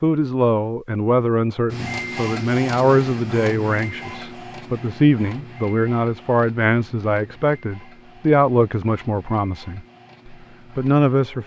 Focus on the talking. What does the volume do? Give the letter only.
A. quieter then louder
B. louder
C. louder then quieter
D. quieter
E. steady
E.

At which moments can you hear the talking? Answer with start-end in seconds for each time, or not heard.
0.0-11.4.